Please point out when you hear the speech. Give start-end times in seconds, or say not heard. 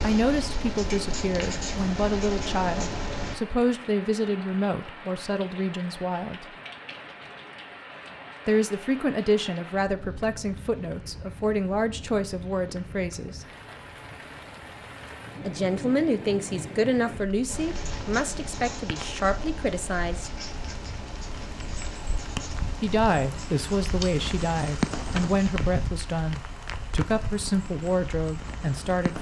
0.0-6.5, 8.4-13.4, 15.4-20.3, 22.8-29.1.